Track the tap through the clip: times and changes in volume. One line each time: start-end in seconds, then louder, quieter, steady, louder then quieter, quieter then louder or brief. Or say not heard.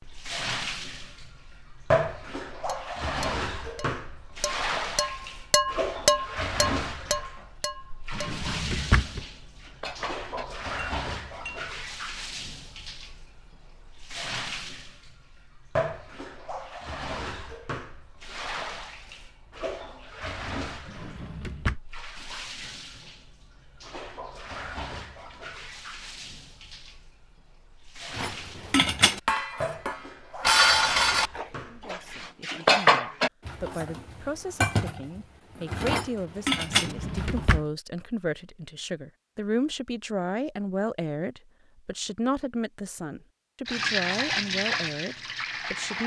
0.0-32.4 quieter
43.6-46.0 brief.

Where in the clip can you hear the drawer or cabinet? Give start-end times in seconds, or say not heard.
8.1-9.2, 20.9-21.8, 36.7-37.6.